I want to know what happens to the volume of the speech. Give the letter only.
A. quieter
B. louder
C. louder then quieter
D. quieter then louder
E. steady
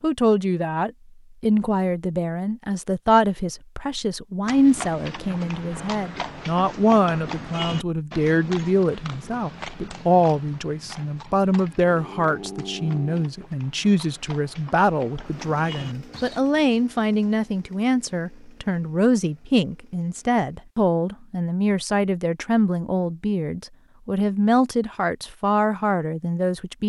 E.